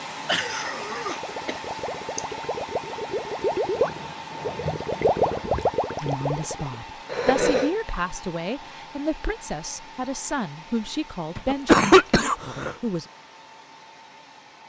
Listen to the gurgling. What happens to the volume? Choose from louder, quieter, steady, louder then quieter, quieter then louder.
louder.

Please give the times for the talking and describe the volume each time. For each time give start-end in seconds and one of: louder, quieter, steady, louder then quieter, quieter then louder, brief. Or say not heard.
6.0-13.1 steady.